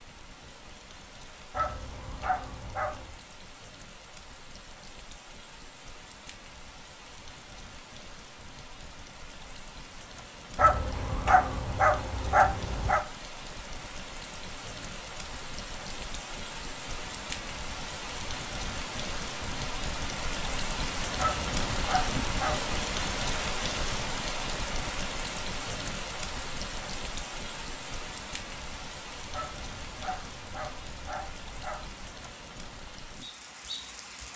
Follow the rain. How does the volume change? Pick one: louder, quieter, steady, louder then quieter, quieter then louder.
louder then quieter.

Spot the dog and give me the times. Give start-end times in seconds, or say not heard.
1.5-3.2, 10.6-13.1, 21.1-22.7, 29.3-32.1.